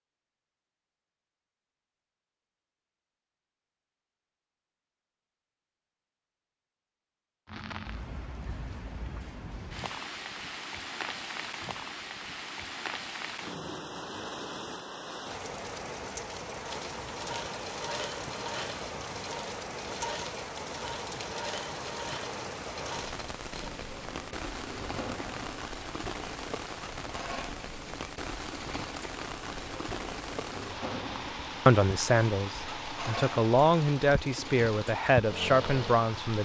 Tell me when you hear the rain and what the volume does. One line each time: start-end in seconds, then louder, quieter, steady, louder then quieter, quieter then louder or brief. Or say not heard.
7.5-36.4 steady.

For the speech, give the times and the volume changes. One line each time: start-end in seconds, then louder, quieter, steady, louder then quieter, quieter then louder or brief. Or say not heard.
31.6-36.4 steady.